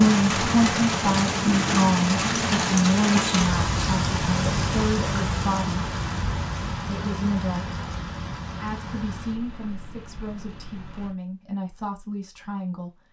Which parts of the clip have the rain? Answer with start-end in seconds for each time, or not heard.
0.0-11.2.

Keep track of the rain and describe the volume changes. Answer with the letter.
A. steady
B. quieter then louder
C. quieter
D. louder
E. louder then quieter
C.